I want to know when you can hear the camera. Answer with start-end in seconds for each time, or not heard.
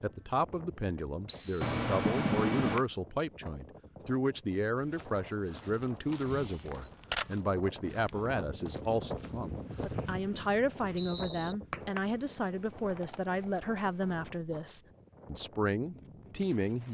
1.6-2.9, 6.7-7.4, 11.8-14.3.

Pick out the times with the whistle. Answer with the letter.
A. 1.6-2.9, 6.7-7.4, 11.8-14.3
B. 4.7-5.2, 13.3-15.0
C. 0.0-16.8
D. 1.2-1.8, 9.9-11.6
D.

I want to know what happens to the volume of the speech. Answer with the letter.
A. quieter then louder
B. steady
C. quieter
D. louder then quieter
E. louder
B.